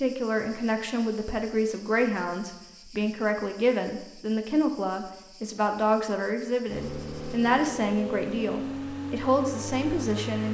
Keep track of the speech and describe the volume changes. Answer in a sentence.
The volume of the speech stays about the same.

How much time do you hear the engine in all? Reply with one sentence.
You can hear the engine for 4 seconds altogether.